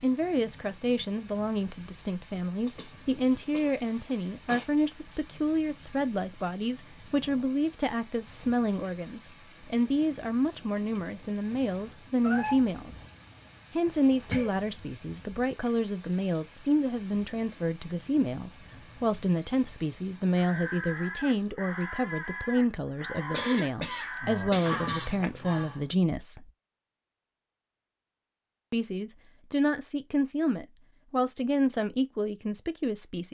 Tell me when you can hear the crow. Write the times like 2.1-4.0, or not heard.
20.4-25.9.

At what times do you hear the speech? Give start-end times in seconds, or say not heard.
0.0-13.0, 13.8-26.5, 28.7-33.2.